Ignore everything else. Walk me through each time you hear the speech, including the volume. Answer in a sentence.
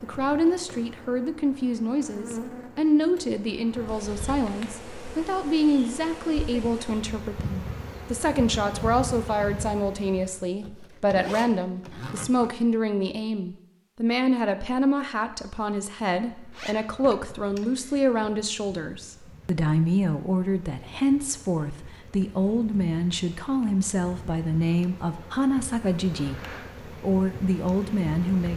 You can hear the speech from 0.0 to 28.5 s, at a steady volume.